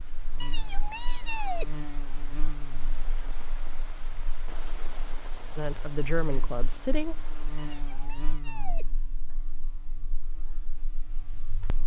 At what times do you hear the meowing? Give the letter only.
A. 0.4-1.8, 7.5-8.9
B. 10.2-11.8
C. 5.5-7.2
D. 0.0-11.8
A.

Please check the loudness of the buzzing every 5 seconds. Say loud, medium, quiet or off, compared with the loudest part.
loud, loud, medium.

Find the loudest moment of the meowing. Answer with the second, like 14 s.
1 s.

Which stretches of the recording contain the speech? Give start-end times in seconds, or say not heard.
5.5-7.2.